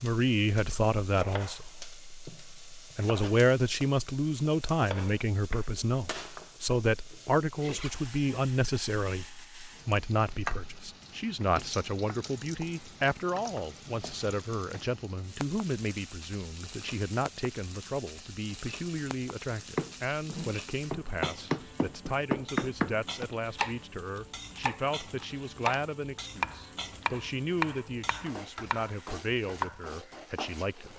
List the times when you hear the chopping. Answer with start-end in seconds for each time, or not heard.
19.8-29.8.